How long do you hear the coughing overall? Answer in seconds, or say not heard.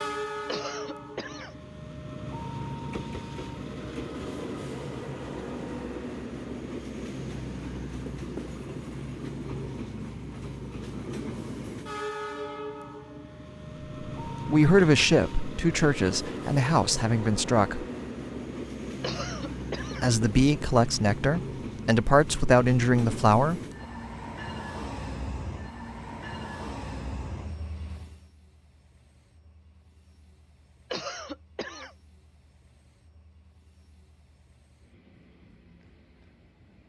3 s.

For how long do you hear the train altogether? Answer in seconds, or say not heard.
37 s.